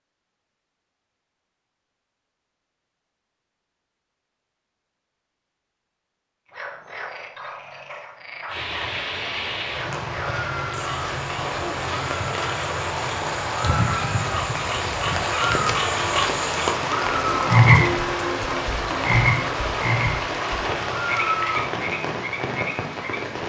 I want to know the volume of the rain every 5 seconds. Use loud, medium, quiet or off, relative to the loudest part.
off, medium, loud, loud, loud.